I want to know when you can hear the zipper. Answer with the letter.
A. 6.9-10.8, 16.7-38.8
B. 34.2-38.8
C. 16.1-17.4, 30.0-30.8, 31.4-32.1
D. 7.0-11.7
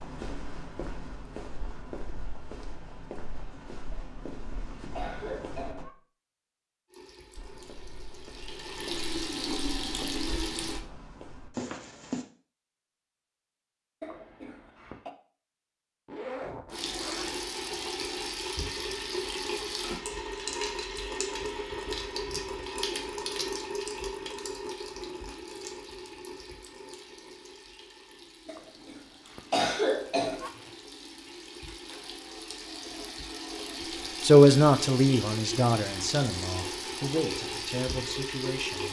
C.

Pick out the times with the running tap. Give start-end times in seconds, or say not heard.
6.9-10.8, 16.7-38.8.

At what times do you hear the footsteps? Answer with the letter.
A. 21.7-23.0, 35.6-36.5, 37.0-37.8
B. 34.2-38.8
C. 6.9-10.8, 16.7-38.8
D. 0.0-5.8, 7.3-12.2
D.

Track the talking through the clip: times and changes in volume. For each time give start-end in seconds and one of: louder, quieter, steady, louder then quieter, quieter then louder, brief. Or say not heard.
34.2-38.8 quieter.